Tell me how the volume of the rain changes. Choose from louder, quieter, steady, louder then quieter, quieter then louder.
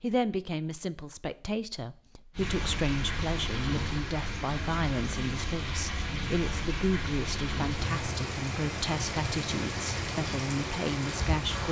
steady.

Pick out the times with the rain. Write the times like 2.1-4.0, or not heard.
2.4-11.6.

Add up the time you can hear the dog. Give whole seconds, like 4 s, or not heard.
not heard.